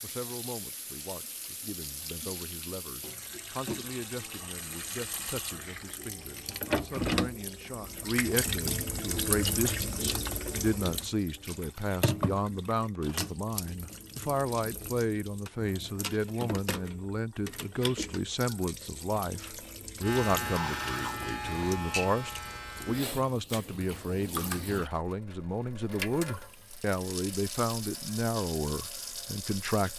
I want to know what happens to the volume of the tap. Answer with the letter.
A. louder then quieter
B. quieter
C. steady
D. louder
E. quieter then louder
A.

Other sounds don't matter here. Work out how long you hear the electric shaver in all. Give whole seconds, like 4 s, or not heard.
3 s.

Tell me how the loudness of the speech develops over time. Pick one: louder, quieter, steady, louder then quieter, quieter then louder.
louder.